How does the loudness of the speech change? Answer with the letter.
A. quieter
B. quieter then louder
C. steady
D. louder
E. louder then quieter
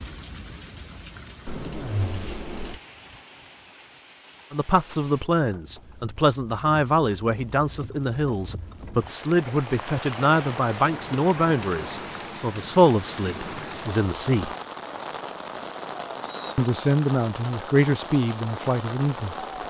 C.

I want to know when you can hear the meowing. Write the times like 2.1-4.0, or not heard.
1.4-2.8.